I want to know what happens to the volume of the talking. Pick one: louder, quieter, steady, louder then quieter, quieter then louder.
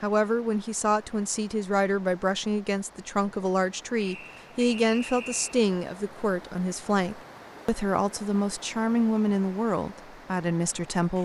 steady.